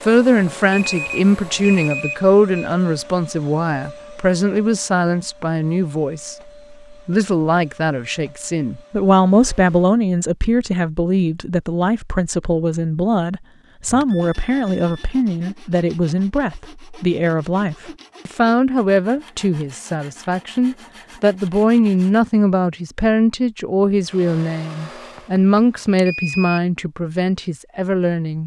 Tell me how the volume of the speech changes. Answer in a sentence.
The volume of the speech stays about the same.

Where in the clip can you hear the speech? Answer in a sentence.
The speech can be heard from 0.0 to 28.4 s.